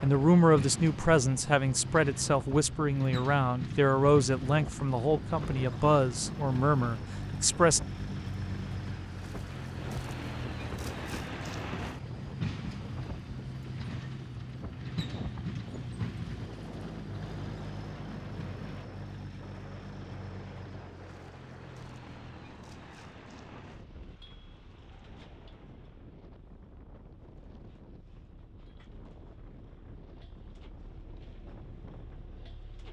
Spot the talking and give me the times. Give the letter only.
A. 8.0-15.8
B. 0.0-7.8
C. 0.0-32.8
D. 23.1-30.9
B.